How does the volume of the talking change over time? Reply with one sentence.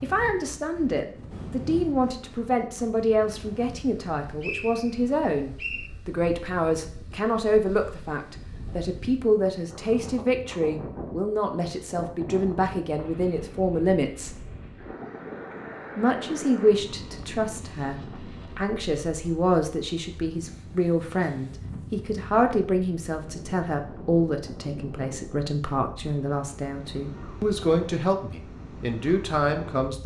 The loudness of the talking stays about the same.